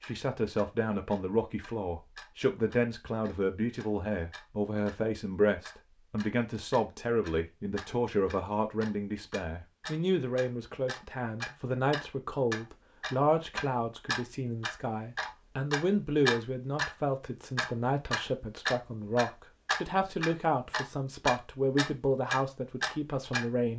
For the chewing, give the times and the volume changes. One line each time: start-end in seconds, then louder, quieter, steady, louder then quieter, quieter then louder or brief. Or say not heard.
not heard.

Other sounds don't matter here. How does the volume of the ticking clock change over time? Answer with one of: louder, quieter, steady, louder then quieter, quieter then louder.
louder.